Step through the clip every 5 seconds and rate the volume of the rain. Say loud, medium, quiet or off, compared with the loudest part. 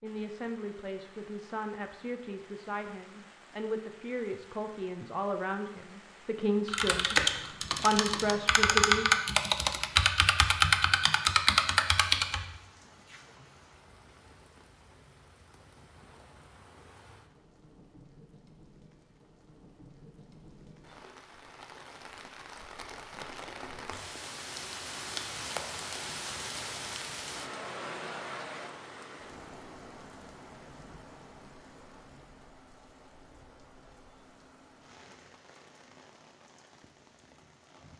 quiet, quiet, quiet, quiet, medium, loud, quiet, quiet.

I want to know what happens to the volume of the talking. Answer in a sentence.
The volume of the talking goes up.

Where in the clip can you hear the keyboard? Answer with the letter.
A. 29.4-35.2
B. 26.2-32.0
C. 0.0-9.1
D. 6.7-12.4
D.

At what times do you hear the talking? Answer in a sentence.
You can hear the talking from 0.0 to 9.1 s.